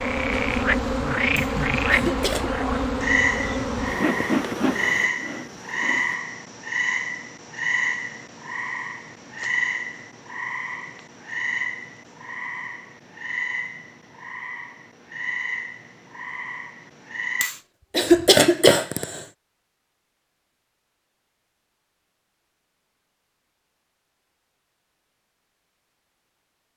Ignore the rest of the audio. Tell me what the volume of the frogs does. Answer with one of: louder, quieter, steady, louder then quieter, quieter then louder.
quieter.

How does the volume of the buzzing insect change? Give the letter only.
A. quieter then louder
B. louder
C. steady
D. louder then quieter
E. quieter
E.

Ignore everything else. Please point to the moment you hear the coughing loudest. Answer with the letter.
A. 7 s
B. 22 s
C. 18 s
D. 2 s
C.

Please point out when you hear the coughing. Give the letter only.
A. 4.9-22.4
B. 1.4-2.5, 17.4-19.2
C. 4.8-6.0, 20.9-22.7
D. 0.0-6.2
B.